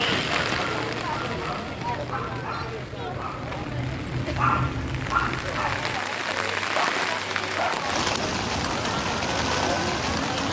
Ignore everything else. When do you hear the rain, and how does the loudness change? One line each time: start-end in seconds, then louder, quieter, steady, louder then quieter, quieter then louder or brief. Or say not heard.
0.0-10.4 quieter then louder.